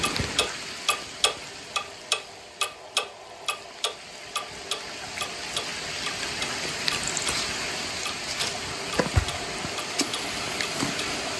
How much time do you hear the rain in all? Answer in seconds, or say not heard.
11 s.